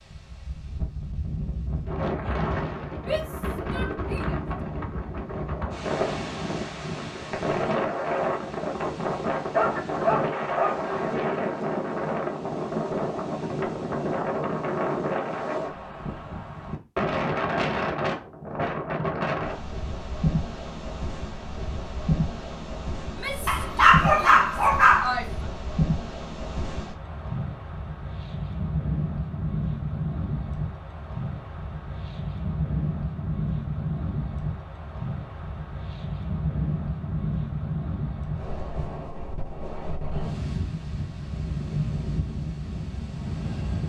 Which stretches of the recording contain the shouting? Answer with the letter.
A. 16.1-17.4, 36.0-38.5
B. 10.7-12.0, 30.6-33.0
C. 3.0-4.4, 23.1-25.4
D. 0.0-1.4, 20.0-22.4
C.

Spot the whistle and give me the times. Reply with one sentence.
You can't hear the whistle here.